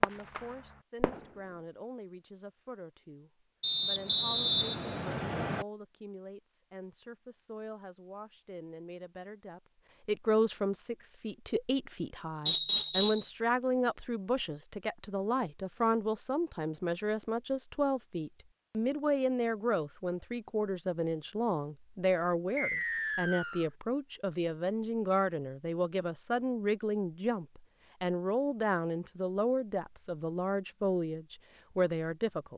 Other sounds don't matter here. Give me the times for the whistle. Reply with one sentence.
You can hear the whistle from 3.6 to 5.7 s, from 12.4 to 13.2 s and from 22.6 to 23.7 s.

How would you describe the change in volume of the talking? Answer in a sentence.
The loudness of the talking goes up.